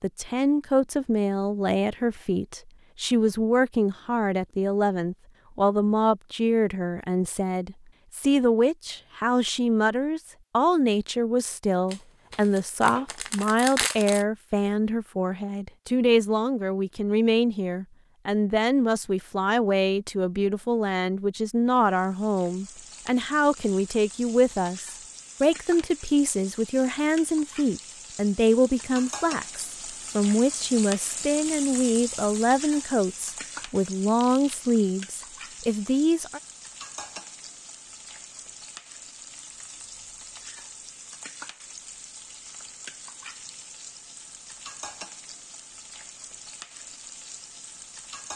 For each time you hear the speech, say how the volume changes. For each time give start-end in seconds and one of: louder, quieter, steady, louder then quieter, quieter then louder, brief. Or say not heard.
0.0-36.4 steady.